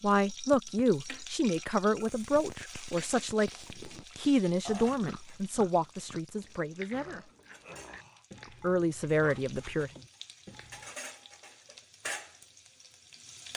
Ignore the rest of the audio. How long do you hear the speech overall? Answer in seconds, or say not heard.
9 s.